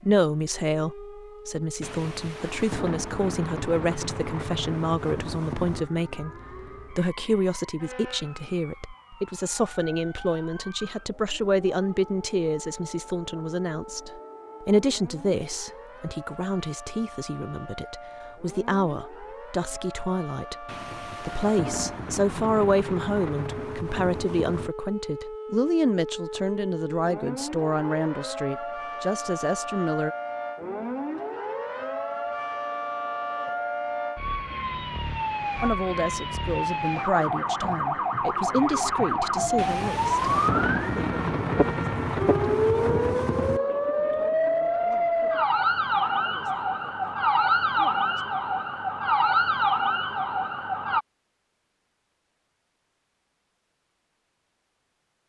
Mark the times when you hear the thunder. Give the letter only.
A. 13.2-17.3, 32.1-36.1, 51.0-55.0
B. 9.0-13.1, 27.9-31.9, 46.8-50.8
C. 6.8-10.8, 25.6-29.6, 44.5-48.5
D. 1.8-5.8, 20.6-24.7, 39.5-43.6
D.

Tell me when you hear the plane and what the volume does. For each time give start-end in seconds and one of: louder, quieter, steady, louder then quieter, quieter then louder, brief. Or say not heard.
not heard.